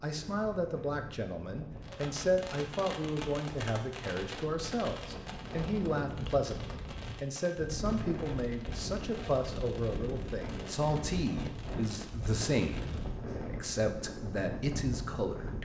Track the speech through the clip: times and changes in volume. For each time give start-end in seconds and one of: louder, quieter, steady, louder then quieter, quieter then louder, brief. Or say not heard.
0.0-15.6 steady.